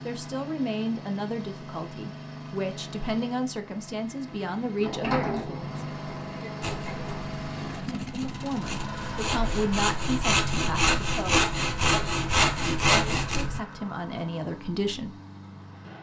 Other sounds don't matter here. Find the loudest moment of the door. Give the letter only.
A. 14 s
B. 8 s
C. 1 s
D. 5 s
D.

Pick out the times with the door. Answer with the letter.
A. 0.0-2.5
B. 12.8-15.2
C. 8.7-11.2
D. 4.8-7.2
D.